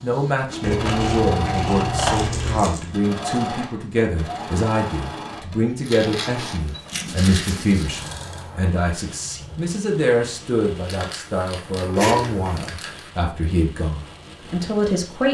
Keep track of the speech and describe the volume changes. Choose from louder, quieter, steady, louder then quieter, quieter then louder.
steady.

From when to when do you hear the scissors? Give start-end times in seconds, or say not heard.
0.6-2.7, 5.8-7.8, 11.9-12.4.